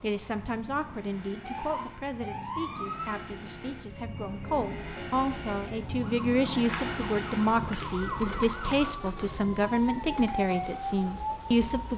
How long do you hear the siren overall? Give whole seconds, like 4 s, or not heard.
12 s.